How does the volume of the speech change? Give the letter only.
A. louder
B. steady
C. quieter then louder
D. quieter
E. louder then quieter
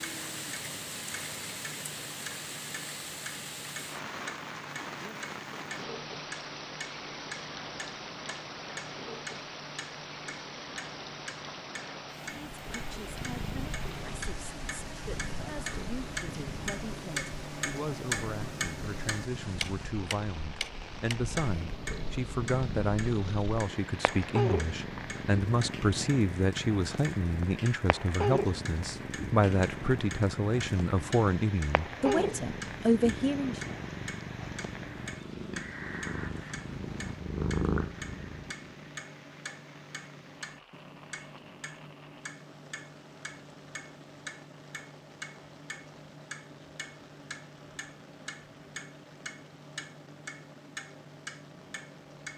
A.